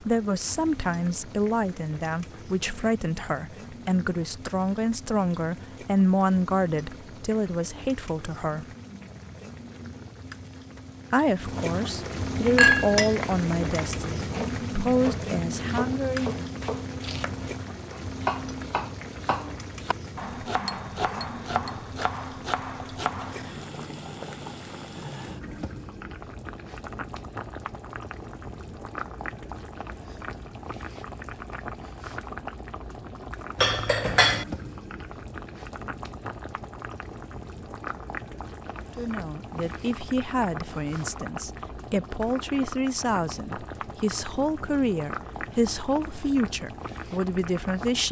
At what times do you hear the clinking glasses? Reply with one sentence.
The clinking glasses can be heard from 12.6 to 13.2 s, from 20.6 to 21.7 s and from 33.5 to 34.5 s.